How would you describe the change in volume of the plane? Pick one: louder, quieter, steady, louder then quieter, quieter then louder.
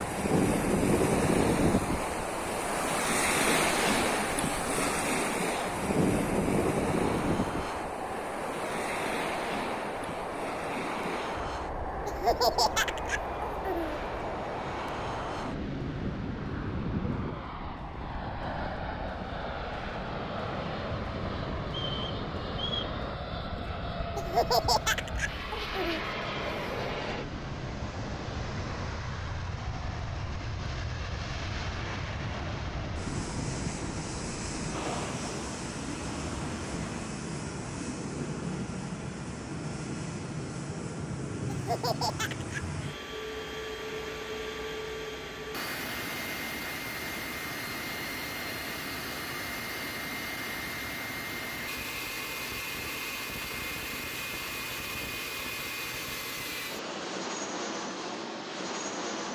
steady.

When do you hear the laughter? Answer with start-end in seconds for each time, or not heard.
12.1-14.0, 24.1-26.0, 41.5-42.6.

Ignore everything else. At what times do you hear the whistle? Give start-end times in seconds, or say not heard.
21.6-22.9.